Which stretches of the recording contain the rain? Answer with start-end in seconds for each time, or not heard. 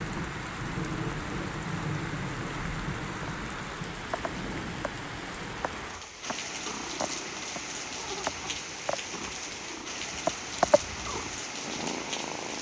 0.0-12.5.